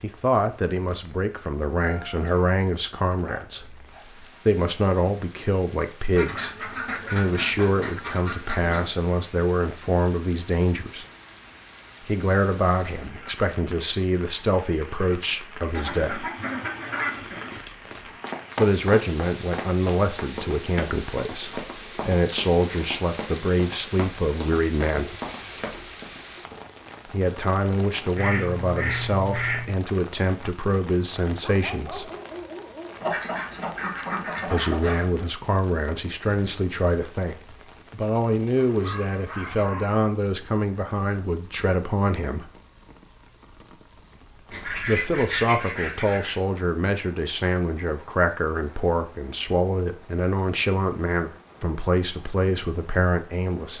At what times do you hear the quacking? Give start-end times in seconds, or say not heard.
6.1-9.0, 15.7-17.6, 28.1-29.8, 33.0-35.0, 44.5-46.4.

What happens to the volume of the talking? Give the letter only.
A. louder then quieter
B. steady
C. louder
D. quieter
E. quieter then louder
B.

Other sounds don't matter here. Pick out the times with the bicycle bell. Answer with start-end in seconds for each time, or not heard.
not heard.